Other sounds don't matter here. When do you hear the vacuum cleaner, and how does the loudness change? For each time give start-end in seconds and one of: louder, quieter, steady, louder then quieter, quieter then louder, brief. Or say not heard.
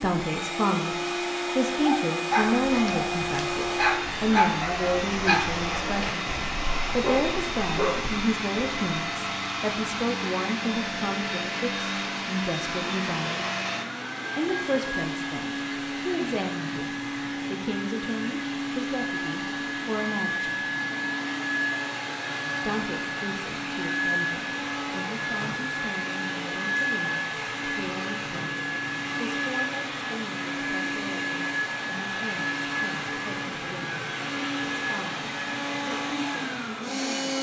0.0-37.3 steady.